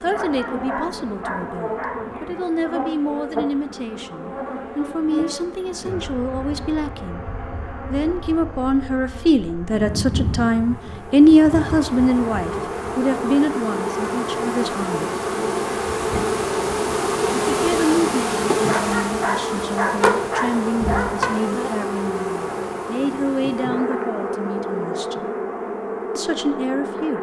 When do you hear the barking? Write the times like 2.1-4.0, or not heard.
0.1-2.4, 18.6-21.3.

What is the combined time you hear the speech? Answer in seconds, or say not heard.
23 s.